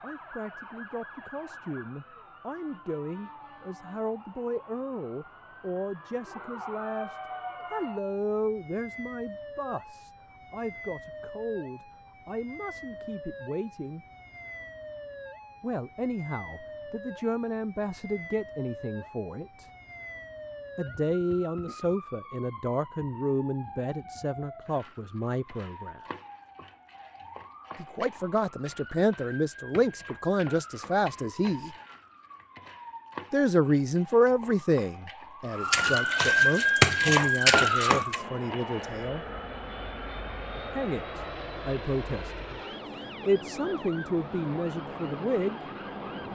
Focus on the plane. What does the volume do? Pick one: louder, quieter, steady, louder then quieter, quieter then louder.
steady.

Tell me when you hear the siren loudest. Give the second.
37 s.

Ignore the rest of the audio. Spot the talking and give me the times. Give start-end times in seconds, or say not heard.
0.0-14.1, 15.6-19.6, 20.8-26.0, 27.8-31.7, 33.3-39.2, 40.8-45.6.